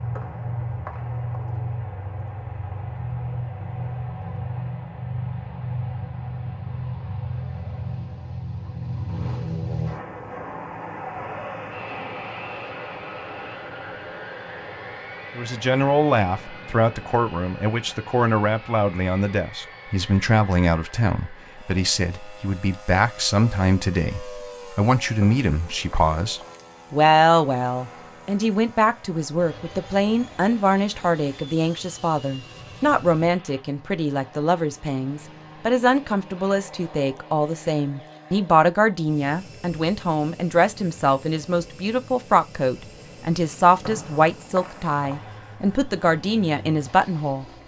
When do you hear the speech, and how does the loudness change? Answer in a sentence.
You can hear the speech from 15.3 to 47.5 s, at a steady volume.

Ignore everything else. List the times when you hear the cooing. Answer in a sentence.
You can't hear the cooing here.